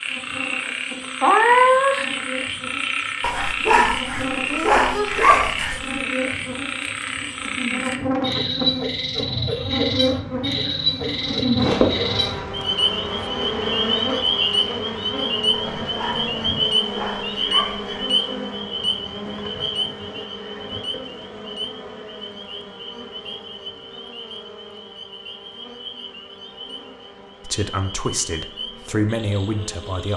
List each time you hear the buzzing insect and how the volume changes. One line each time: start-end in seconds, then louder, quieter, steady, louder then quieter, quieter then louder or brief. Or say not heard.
0.0-30.1 louder then quieter.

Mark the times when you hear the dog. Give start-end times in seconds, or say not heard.
3.2-6.0, 15.5-18.1.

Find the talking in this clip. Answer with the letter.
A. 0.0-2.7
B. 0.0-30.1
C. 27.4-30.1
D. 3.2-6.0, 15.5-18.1
C.